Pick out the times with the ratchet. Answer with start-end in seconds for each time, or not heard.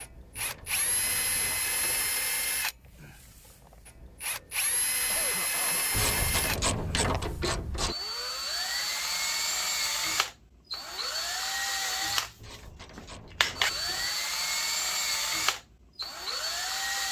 0.3-2.1, 5.9-8.0, 12.3-14.2.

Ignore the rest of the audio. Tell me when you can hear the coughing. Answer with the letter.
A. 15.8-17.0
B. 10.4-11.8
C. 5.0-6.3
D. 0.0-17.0
C.